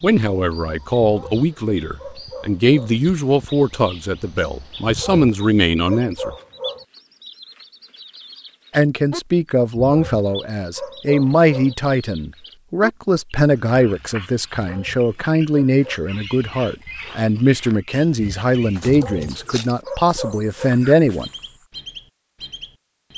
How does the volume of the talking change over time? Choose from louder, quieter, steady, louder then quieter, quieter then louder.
steady.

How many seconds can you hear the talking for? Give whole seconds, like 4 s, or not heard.
19 s.